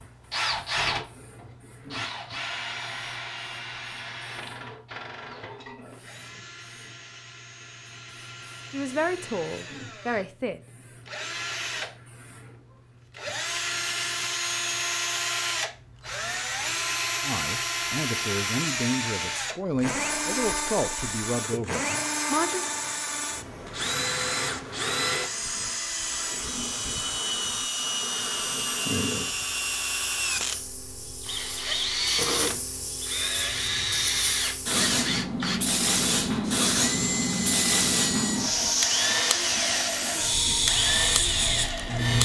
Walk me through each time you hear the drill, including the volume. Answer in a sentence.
You can hear the drill from 0.0 to 42.2 s, getting louder.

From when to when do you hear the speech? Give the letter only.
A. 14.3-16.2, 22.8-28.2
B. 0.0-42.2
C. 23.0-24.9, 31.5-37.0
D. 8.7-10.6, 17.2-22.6
D.